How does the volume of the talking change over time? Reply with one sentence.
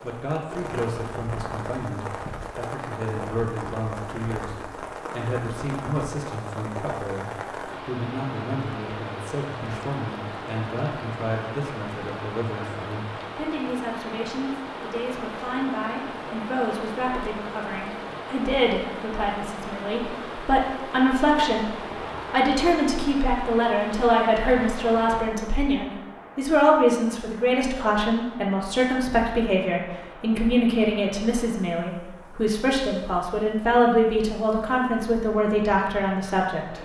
The loudness of the talking goes up.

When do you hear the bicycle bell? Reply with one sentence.
You can't hear the bicycle bell here.